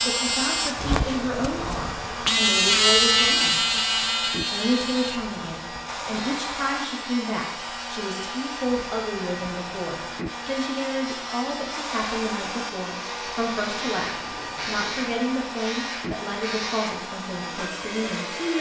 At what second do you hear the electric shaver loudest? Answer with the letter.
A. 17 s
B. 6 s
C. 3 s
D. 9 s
C.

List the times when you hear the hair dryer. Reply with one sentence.
You can hear the hair dryer from 0.0 to 18.5 s.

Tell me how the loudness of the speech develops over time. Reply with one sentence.
The volume of the speech stays about the same.